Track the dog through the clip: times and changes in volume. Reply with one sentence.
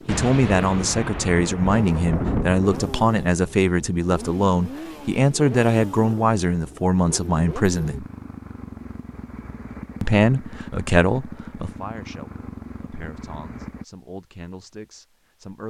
You can't hear the dog here.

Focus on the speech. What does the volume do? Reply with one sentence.
The loudness of the speech goes down.